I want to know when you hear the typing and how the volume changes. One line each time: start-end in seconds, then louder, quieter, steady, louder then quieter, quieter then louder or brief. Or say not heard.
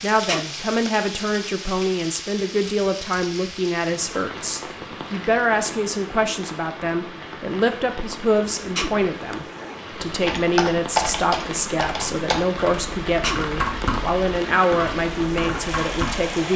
10.1-16.4 quieter.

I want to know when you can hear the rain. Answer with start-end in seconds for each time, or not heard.
0.0-16.5.